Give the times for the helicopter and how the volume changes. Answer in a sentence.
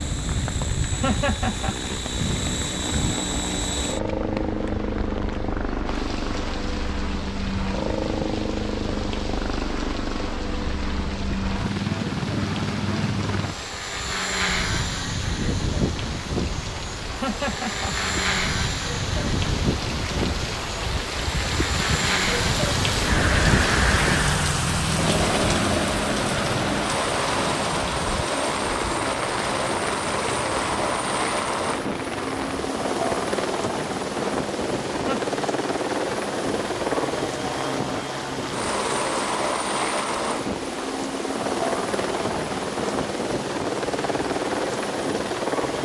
You can hear the helicopter from 0.0 to 45.8 s, at a steady volume.